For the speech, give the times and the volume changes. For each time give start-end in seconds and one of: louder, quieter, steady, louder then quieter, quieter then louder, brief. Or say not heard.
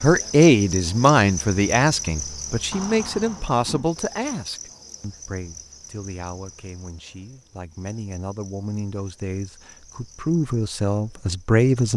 0.0-11.9 quieter then louder.